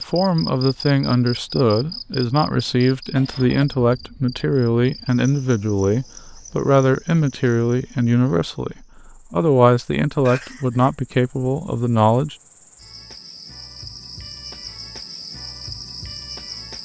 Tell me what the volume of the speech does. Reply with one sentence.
The volume of the speech stays about the same.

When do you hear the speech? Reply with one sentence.
The speech can be heard from 0.1 to 12.3 s.